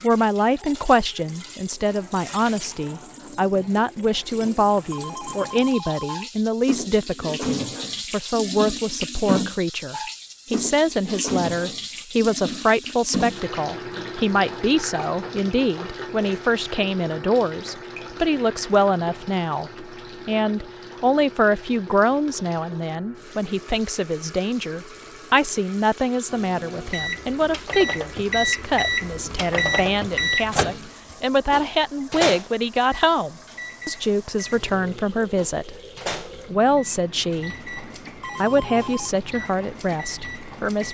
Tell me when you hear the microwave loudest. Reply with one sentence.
The volume of the microwave peaks at 30 seconds.